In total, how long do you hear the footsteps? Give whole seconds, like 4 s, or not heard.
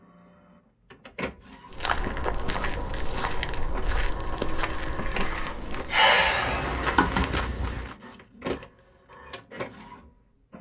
6 s.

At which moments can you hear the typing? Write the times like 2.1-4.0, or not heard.
6.5-7.3.